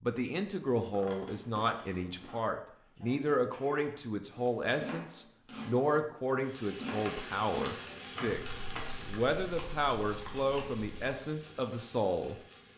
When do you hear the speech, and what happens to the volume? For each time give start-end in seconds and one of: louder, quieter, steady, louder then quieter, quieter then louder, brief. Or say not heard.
0.0-12.4 steady.